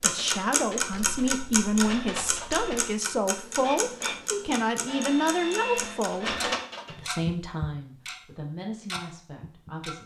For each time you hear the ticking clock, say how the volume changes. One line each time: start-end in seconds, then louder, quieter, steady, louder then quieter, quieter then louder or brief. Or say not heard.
0.0-9.9 quieter.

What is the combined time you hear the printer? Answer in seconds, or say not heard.
7 s.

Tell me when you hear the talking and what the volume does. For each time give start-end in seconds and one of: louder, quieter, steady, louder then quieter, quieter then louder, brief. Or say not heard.
0.0-10.0 quieter.